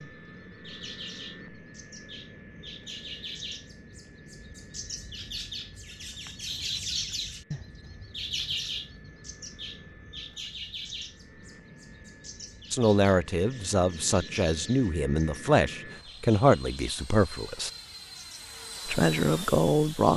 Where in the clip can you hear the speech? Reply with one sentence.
The speech can be heard from 12.7 to 17.7 s and from 18.9 to 20.1 s.